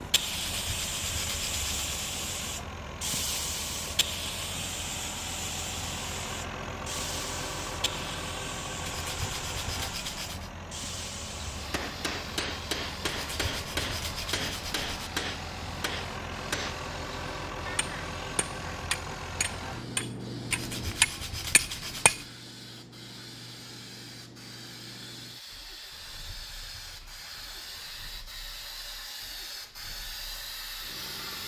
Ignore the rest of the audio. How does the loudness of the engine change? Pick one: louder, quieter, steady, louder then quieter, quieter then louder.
quieter.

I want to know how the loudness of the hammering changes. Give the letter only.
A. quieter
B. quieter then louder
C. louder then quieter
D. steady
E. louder
E.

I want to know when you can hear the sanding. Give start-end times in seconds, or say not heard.
0.3-1.9, 8.8-10.5, 13.1-15.1, 20.5-22.3, 25.9-27.9.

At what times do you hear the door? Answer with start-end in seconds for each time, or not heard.
not heard.